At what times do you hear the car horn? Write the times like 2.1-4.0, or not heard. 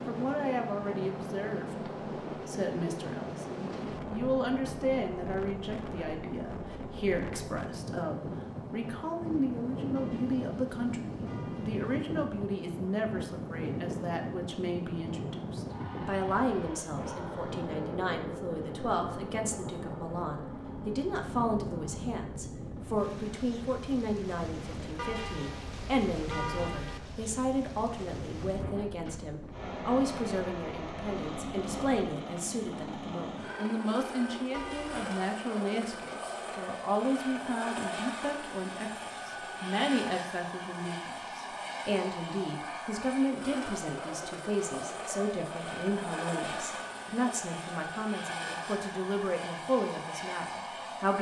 9.9-11.9, 24.9-27.0, 34.5-35.1.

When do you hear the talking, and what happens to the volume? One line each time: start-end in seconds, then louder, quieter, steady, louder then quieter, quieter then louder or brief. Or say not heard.
0.1-51.1 steady.